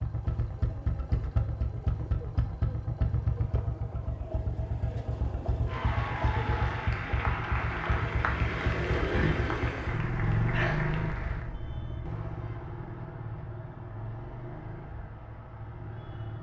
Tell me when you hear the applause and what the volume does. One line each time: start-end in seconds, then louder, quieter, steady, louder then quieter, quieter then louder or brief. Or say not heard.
5.7-11.4 steady.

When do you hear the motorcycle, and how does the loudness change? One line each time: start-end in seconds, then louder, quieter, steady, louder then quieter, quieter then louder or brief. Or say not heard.
0.0-16.3 quieter.